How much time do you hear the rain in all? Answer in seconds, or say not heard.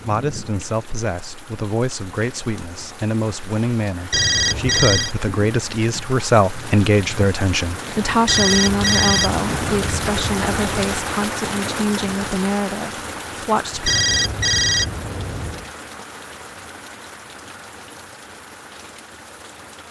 20 s.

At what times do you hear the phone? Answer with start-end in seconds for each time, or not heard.
4.1-5.2, 8.2-11.0, 13.8-15.7.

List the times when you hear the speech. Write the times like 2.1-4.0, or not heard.
0.0-13.9.